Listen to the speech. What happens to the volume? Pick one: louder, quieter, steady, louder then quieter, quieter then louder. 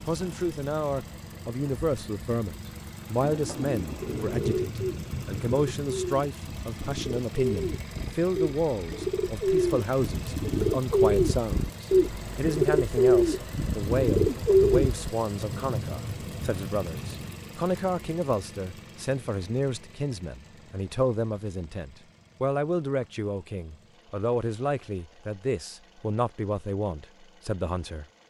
steady.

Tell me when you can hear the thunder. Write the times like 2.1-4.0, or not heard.
4.0-6.0, 15.3-17.4.